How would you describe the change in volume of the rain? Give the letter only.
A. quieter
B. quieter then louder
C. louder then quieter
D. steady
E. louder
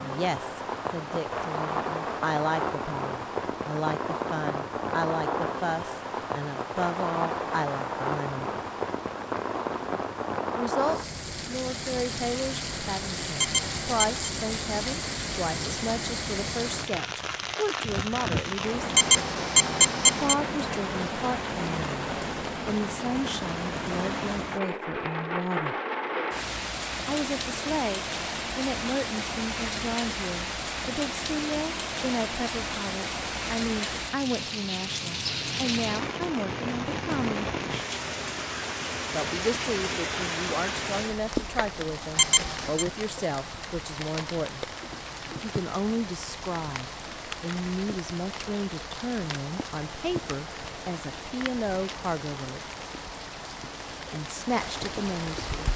A.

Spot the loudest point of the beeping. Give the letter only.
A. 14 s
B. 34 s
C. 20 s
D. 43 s
C.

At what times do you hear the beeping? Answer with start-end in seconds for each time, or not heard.
13.3-14.3, 18.9-20.4, 42.1-42.9.